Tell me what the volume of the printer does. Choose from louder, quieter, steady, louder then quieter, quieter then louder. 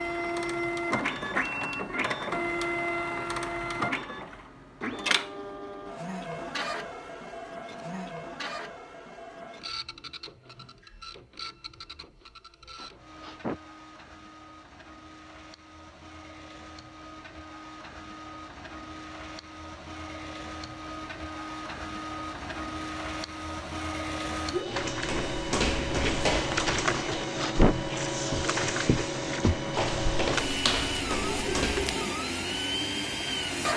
quieter then louder.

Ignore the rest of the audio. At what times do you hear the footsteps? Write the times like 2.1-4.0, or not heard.
24.6-31.9.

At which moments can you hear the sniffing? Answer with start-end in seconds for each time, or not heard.
12.8-13.6, 26.9-27.8.